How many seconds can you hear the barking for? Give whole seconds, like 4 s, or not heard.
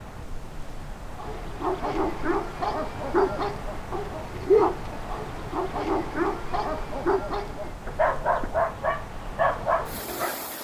9 s.